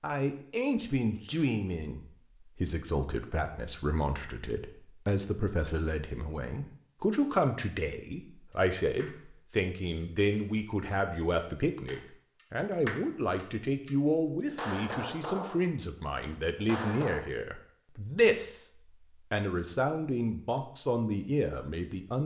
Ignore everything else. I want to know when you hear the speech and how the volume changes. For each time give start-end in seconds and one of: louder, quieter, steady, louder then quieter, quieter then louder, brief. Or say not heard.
0.0-18.7 steady
19.3-22.2 brief.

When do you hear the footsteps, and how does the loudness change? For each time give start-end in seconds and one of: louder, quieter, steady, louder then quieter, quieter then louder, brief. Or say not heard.
not heard.